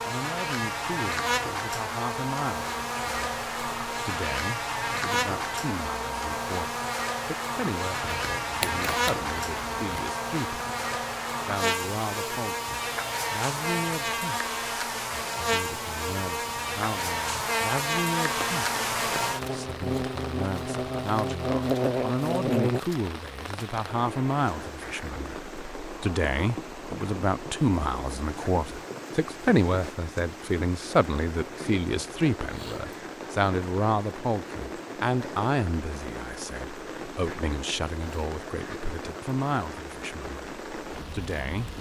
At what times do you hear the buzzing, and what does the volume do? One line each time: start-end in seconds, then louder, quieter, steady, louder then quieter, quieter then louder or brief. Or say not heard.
0.0-22.8 steady.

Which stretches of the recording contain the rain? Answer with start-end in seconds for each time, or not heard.
18.3-41.7.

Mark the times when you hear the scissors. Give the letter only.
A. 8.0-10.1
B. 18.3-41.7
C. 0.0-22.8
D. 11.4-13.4
A.